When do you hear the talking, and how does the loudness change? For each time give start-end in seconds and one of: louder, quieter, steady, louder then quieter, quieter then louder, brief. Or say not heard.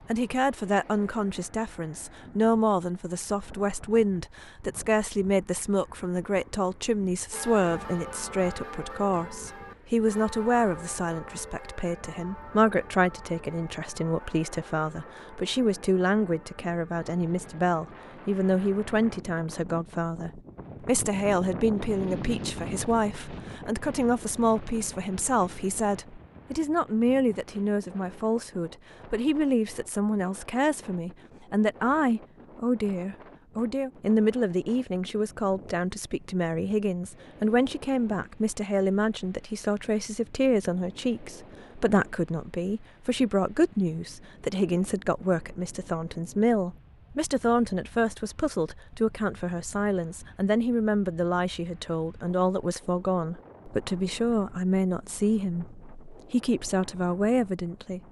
0.1-58.0 steady.